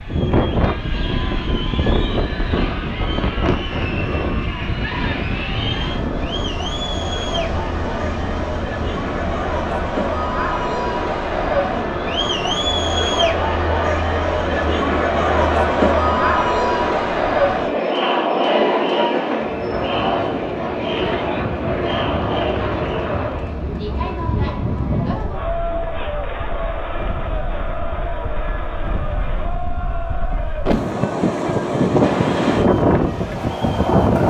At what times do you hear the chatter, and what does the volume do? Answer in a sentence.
You can hear the chatter from 0.0 to 34.0 s, getting louder then quieter.